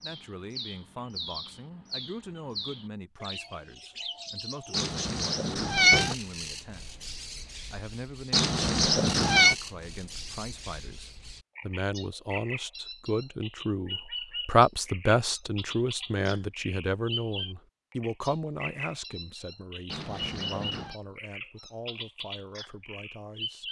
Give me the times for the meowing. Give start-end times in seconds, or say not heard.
4.7-6.2, 8.3-9.6, 19.9-20.9.